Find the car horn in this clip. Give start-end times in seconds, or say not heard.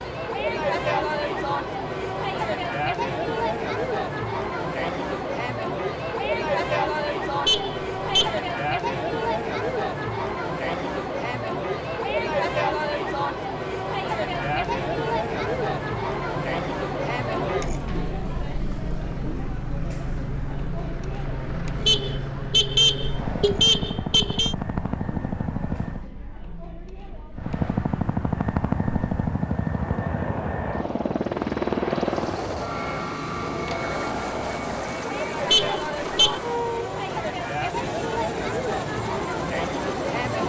7.5-8.3, 21.9-24.6, 35.5-36.4.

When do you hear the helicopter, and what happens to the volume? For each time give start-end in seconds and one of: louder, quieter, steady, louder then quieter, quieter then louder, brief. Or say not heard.
14.2-26.1 louder
27.4-40.4 quieter.